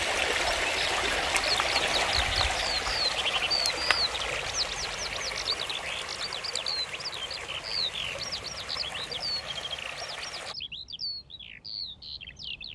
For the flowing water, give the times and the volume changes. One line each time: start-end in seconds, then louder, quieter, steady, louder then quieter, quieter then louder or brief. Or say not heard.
0.0-10.6 quieter.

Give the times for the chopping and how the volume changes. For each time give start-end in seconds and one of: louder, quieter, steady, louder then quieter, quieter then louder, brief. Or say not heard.
not heard.